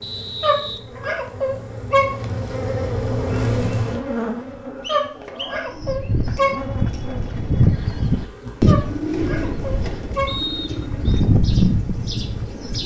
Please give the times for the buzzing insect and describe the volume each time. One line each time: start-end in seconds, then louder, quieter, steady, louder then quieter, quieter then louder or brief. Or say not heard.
0.0-12.8 louder then quieter.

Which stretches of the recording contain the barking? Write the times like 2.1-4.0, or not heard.
0.4-2.1, 4.8-6.5, 8.7-10.3.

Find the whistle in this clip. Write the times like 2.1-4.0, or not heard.
0.0-1.4, 4.8-6.1, 10.2-11.2.